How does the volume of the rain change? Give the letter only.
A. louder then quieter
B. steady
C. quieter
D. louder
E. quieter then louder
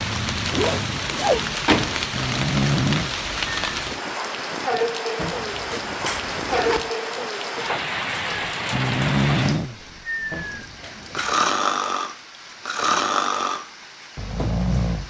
C.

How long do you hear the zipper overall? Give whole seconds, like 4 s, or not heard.
4 s.